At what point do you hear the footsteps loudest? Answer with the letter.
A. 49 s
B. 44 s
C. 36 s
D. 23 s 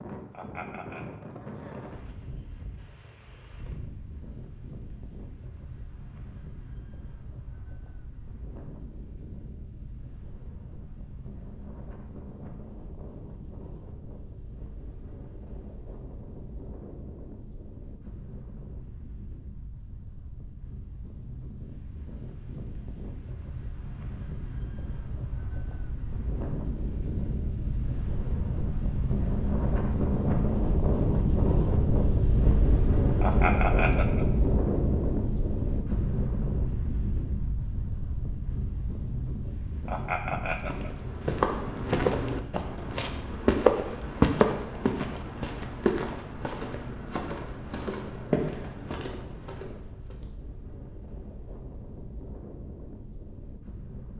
B.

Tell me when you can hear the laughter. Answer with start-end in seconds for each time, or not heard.
0.3-1.1, 33.2-34.2, 39.9-40.9.